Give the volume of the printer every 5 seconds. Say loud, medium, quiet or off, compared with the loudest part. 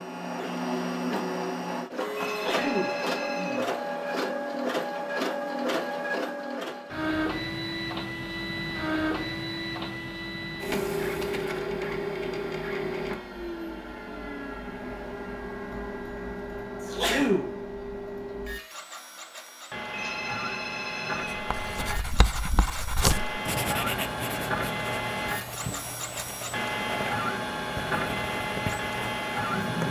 loud, loud, loud, medium, loud, loud.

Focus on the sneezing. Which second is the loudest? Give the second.
17 s.